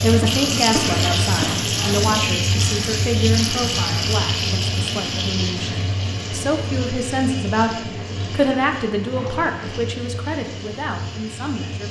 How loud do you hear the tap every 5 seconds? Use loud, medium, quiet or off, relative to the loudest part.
loud, medium, quiet.